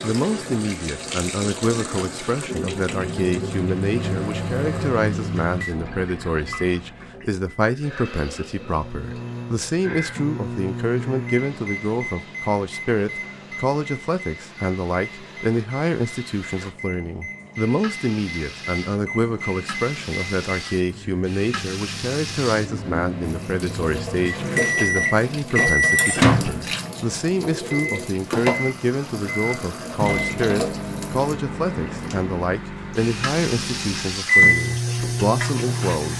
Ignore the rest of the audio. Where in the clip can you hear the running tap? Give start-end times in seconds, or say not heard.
0.0-36.1.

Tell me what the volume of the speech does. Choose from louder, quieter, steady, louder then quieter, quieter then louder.
steady.